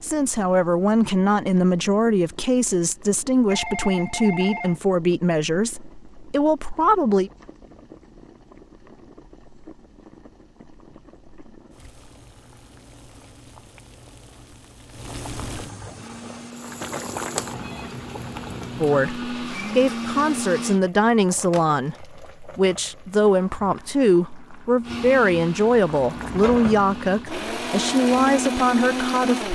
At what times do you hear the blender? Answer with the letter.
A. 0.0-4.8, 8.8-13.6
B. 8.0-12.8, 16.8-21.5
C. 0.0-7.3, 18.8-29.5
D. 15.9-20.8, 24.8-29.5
D.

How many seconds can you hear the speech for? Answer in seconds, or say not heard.
18 s.